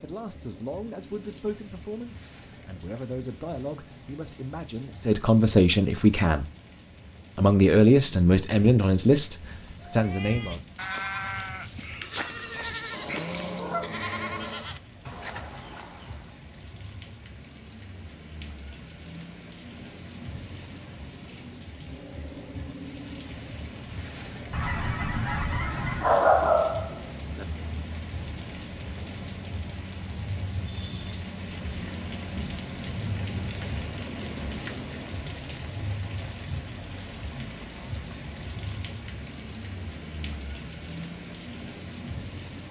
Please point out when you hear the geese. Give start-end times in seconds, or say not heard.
12.9-14.8, 24.5-26.1.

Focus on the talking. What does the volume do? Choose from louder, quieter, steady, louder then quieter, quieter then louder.
louder.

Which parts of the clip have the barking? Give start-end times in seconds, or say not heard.
26.0-27.4.